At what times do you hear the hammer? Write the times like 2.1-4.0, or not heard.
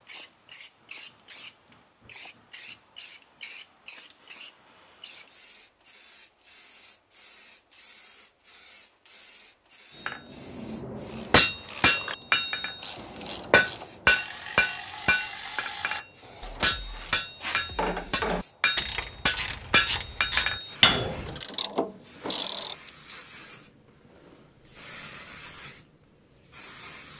10.1-21.4.